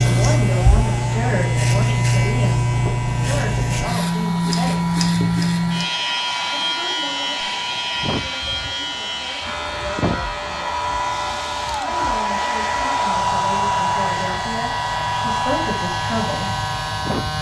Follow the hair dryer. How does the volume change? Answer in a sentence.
The loudness of the hair dryer goes up.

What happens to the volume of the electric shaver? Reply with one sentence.
The loudness of the electric shaver goes down.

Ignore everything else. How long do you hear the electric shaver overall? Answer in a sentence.
The electric shaver can be heard for 17 seconds in total.